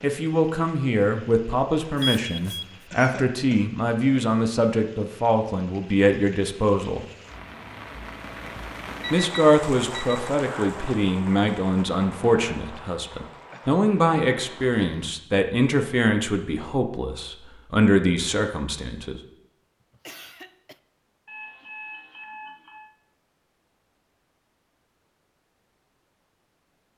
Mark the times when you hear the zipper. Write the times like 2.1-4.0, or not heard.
not heard.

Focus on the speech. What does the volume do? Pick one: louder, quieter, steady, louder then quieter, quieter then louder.
steady.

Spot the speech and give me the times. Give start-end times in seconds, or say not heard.
0.0-7.0, 9.1-19.2.